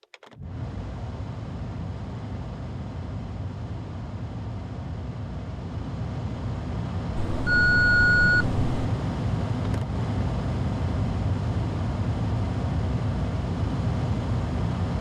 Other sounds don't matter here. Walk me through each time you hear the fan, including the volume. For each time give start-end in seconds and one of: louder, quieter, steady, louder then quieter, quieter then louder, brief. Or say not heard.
0.0-14.9 louder.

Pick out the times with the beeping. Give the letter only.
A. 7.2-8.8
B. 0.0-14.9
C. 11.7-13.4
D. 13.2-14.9
A.